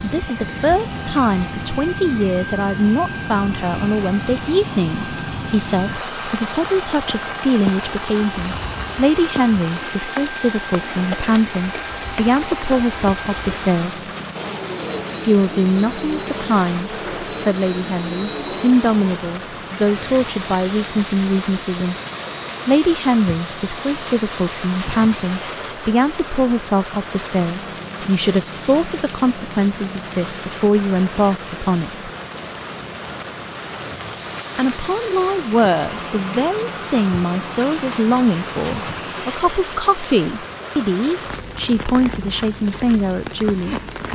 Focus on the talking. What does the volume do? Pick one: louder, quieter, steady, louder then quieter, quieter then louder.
steady.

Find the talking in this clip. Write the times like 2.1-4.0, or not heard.
0.0-14.1, 15.2-21.9, 22.6-32.0, 34.5-44.1.